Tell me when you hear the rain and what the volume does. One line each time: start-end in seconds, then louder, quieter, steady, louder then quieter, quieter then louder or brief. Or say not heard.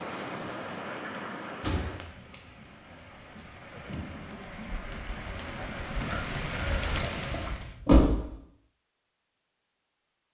0.0-7.8 quieter then louder.